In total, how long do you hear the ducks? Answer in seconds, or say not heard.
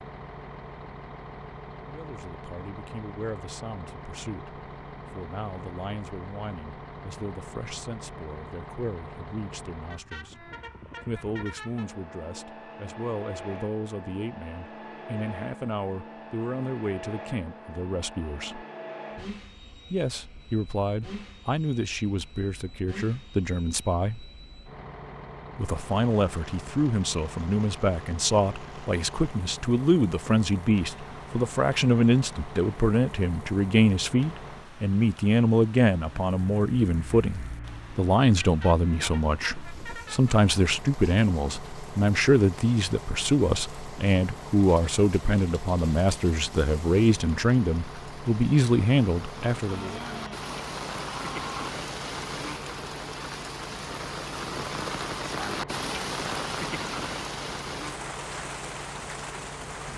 not heard.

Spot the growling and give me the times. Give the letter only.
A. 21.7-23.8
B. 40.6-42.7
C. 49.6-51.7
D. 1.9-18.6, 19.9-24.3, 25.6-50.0
C.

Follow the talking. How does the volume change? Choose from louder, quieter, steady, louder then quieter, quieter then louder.
louder.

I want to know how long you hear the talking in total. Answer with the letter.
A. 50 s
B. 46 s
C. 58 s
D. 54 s
B.